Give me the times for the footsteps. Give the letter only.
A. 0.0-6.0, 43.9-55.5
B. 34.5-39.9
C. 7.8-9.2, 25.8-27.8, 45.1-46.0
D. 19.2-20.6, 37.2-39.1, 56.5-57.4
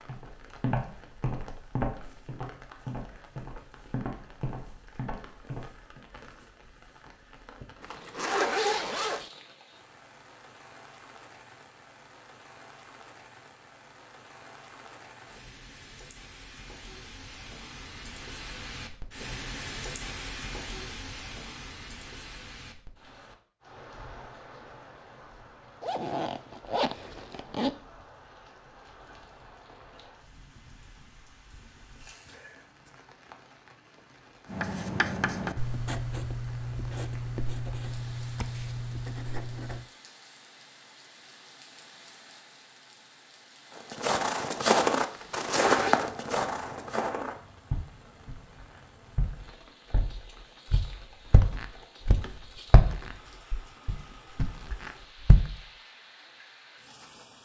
A.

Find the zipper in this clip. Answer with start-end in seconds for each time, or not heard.
7.8-9.2, 25.8-27.8, 45.1-46.0.